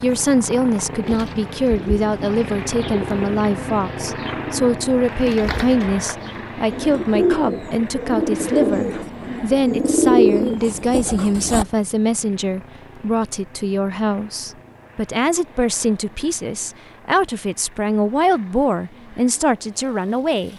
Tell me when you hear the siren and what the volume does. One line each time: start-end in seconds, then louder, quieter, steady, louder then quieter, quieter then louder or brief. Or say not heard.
not heard.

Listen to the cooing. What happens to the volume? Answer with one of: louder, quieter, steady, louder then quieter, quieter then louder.
louder.